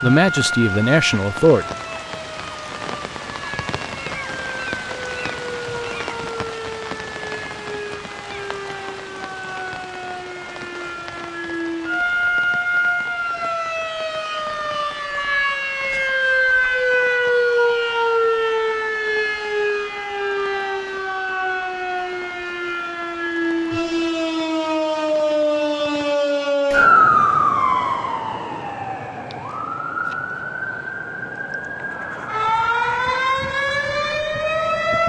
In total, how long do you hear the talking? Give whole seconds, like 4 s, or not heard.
2 s.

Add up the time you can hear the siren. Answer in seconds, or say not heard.
35 s.